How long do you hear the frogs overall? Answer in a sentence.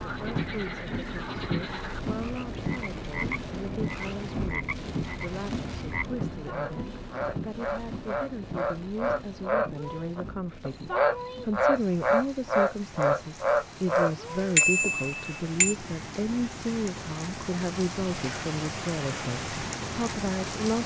The frogs can be heard for 15 seconds in total.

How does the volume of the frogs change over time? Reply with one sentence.
The loudness of the frogs goes up.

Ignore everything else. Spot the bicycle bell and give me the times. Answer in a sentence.
You can hear the bicycle bell from 14.6 to 15.8 s.